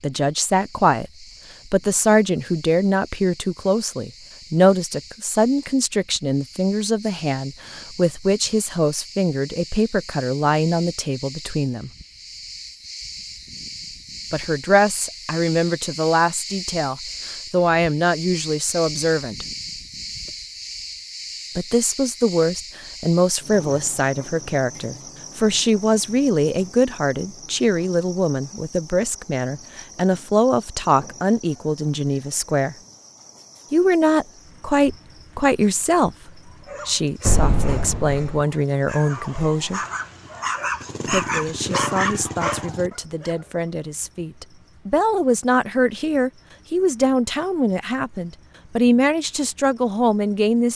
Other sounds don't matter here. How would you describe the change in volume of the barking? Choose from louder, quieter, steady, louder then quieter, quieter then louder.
louder.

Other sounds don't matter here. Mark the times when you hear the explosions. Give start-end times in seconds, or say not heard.
37.2-38.5.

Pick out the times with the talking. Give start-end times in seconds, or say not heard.
0.0-11.9, 14.3-19.4, 21.6-32.8, 33.7-39.8, 41.1-50.6.